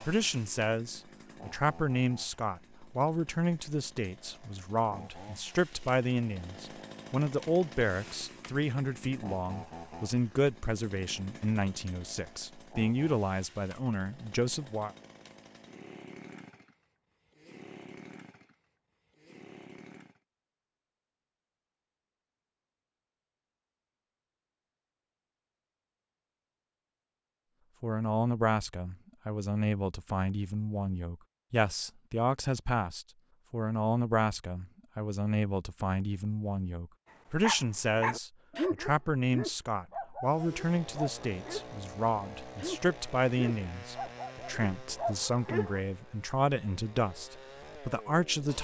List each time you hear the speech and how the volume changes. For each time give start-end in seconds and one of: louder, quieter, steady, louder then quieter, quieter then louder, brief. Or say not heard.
0.0-14.9 steady
27.8-48.5 steady.